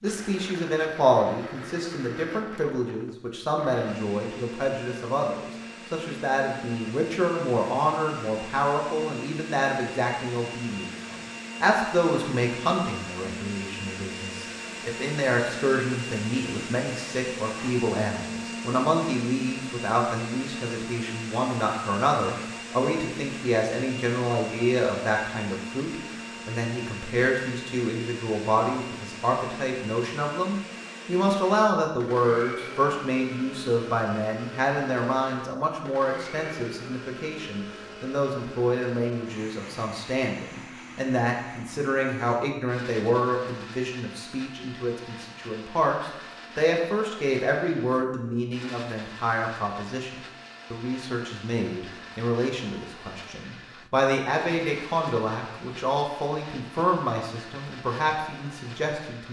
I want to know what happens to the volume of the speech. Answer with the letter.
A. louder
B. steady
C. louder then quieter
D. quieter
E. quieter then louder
B.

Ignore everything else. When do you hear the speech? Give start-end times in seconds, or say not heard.
0.0-59.2.